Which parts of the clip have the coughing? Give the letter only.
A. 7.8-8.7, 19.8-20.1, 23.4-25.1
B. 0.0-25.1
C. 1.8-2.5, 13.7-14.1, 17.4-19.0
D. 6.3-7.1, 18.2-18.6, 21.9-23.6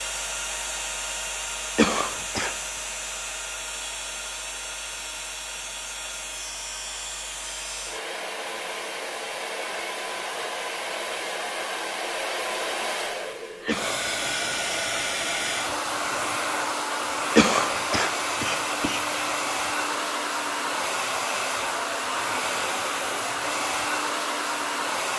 C.